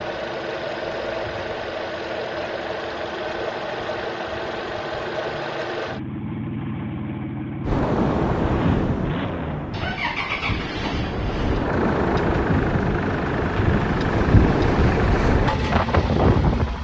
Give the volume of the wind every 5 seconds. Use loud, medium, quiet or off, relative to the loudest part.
off, loud, loud, loud.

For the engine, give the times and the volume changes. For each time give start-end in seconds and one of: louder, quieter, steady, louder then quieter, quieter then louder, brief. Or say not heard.
0.0-16.7 steady.